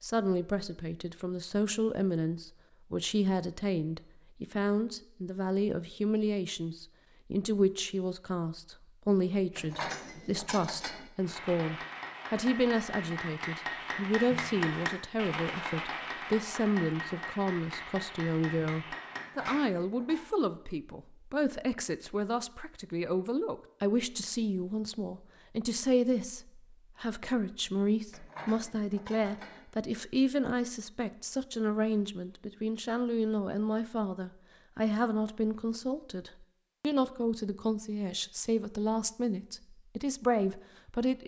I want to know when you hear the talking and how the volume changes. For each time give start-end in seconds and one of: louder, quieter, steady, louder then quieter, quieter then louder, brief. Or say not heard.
0.0-41.2 steady.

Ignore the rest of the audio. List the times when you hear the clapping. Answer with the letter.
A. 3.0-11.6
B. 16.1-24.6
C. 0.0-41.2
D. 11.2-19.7
D.